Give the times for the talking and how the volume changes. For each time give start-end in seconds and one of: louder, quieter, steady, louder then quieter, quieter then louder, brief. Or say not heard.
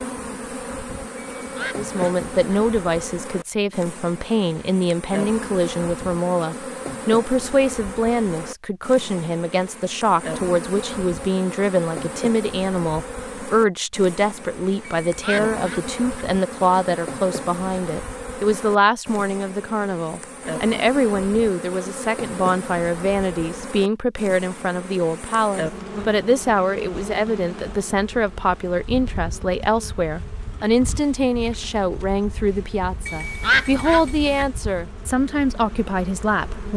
1.6-36.7 steady.